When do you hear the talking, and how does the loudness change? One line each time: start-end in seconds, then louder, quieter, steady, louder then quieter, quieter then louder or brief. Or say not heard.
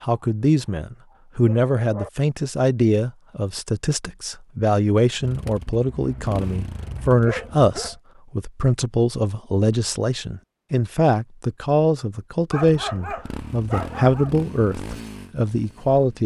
0.0-16.2 steady.